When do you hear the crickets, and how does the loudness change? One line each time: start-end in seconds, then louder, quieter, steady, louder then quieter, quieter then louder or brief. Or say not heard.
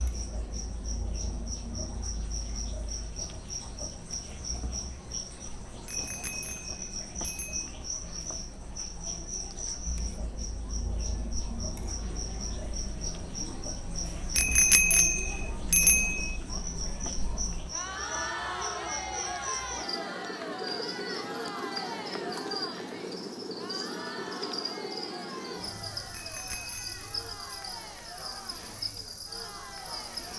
0.0-30.3 steady.